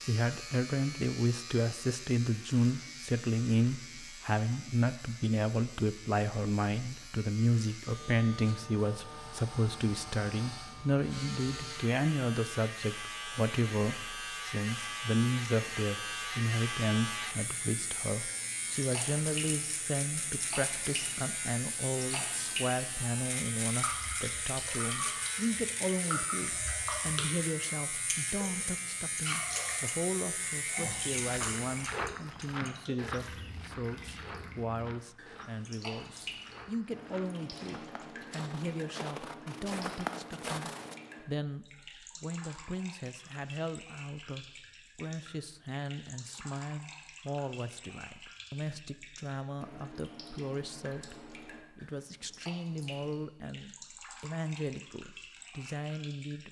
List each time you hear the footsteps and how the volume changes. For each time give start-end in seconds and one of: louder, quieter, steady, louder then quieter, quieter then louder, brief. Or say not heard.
30.9-41.0 quieter then louder.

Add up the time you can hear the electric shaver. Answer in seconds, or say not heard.
32 s.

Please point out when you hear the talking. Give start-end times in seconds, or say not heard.
0.0-56.4.